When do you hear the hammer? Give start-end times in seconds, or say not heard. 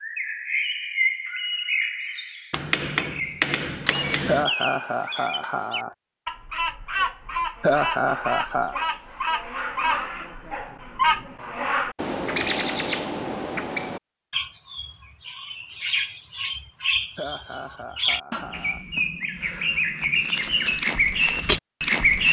2.5-4.5.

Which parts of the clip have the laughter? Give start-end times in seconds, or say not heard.
4.2-6.0, 7.6-8.8, 17.1-18.9.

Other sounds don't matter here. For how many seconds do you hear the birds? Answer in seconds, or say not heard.
22 s.